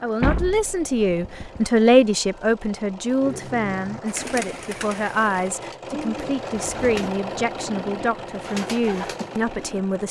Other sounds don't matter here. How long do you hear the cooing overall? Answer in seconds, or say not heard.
7 s.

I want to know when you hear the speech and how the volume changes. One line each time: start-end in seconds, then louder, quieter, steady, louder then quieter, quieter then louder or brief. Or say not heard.
0.0-10.0 quieter.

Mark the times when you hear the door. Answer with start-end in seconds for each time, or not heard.
0.2-1.7.